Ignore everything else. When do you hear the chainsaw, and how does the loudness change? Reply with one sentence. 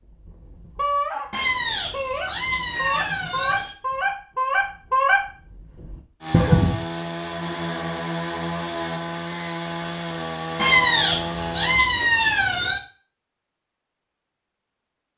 The chainsaw can be heard from 6.2 to 11.8 s, at a steady volume.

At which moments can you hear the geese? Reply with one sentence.
The geese can be heard from 0.1 to 6.8 s.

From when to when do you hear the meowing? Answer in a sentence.
The meowing can be heard from 1.3 to 3.8 s and from 10.6 to 12.8 s.